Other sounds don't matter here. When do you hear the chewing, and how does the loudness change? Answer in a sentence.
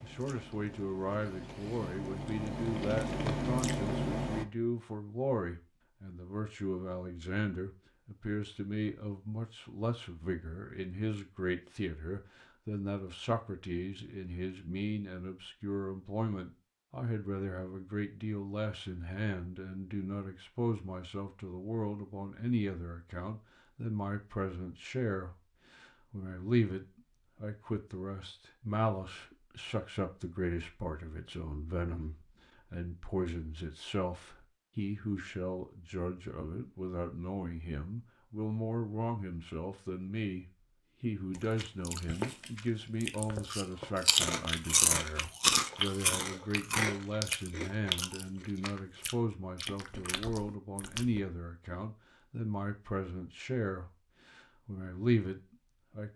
The chewing can be heard from 0.0 to 4.5 s, getting louder; and from 41.4 to 51.2 s, getting louder then quieter.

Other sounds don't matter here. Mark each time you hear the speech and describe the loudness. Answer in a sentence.
The speech can be heard from 0.0 to 56.1 s, at a steady volume.